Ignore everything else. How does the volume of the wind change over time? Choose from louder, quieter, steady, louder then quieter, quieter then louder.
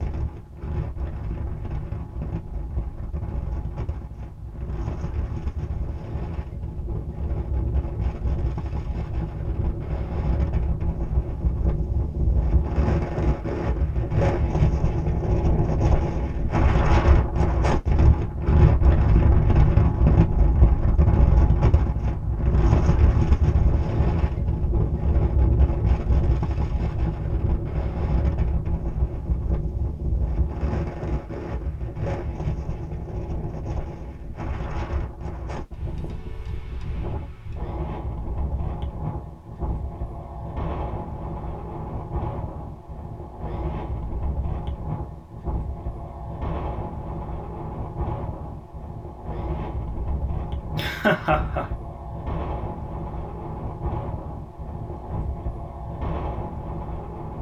louder then quieter.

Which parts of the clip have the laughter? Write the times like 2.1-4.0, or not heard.
50.8-51.7.